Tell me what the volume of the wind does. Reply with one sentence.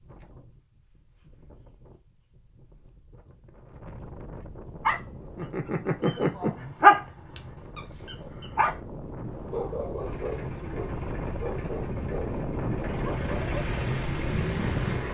The loudness of the wind goes up.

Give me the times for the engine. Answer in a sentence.
The engine can be heard from 9.9 to 15.0 s.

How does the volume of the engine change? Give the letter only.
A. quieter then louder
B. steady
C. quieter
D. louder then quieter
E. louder
E.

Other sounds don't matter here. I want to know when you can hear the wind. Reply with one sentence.
You can hear the wind from 0.0 to 15.0 s.